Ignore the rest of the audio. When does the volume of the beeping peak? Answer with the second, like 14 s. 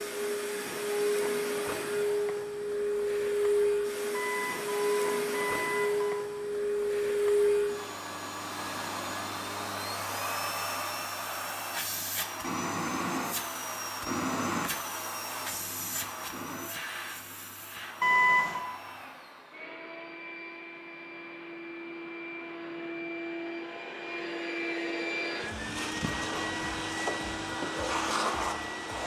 18 s.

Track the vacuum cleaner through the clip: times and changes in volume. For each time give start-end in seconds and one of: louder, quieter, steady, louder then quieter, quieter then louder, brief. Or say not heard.
0.0-29.0 quieter then louder.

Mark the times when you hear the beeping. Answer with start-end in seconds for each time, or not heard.
4.1-6.2, 18.0-18.6.